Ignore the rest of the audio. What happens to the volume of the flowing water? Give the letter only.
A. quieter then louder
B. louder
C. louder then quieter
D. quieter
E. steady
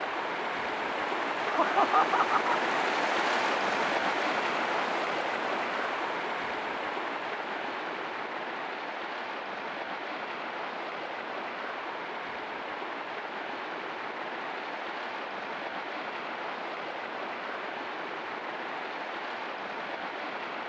D.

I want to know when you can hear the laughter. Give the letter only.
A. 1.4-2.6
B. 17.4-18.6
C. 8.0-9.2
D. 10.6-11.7
A.